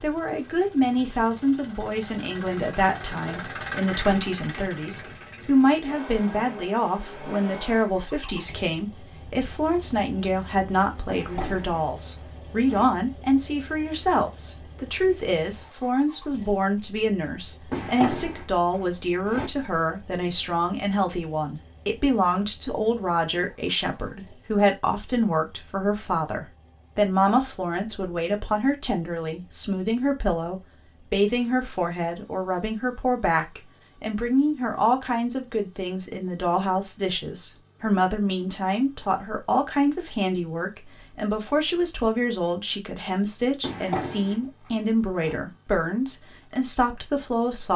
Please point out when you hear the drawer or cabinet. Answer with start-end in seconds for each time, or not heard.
11.1-12.8, 17.7-19.5, 43.6-45.4.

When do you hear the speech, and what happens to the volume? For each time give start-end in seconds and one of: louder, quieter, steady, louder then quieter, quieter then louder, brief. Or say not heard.
0.0-47.7 steady.